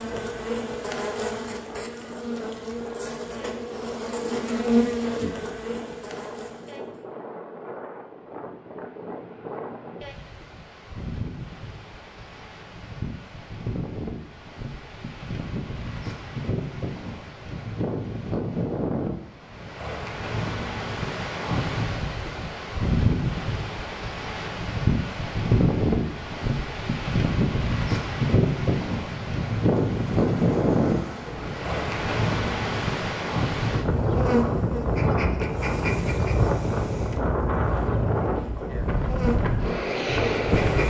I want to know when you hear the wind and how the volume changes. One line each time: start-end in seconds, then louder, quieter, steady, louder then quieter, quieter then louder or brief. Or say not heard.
0.0-40.8 louder.